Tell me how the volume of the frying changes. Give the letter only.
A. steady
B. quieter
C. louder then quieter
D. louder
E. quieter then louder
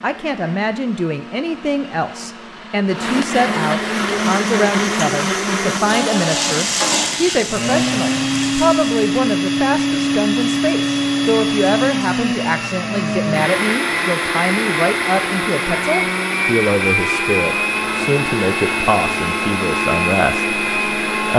C.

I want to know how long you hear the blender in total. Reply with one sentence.
You can hear the blender for 21 seconds altogether.